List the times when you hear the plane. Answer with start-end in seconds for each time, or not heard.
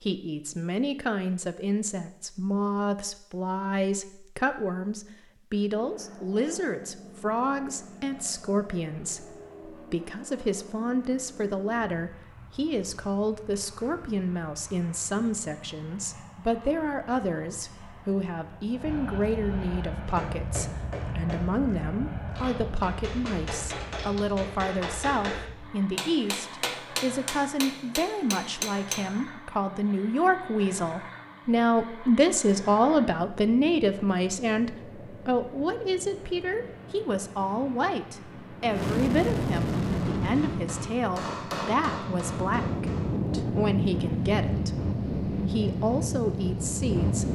5.8-47.3.